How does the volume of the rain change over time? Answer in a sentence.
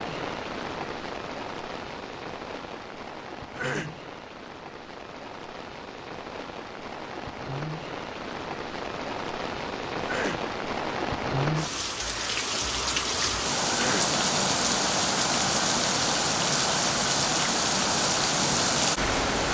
The loudness of the rain goes up.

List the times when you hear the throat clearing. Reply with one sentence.
The throat clearing can be heard from 3.5 to 4.0 s, from 10.0 to 10.4 s and from 13.7 to 14.2 s.